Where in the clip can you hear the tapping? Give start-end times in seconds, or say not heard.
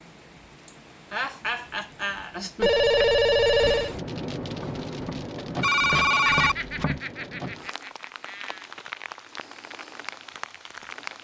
4.5-7.0.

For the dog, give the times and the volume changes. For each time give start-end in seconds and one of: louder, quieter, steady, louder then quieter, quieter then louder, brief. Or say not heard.
not heard.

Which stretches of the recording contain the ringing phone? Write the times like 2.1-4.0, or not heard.
2.6-4.0, 5.6-6.8.